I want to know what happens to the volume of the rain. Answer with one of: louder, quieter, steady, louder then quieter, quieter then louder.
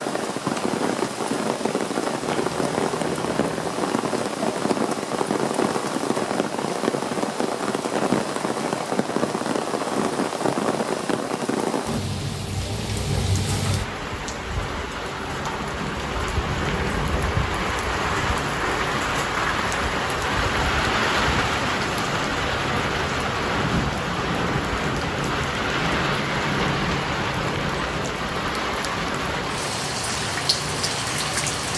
steady.